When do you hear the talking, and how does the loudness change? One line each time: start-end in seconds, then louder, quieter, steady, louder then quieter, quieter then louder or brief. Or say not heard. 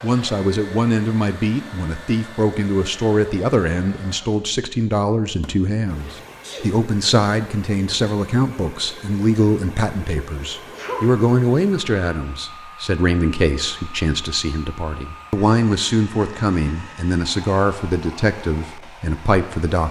0.0-19.8 steady.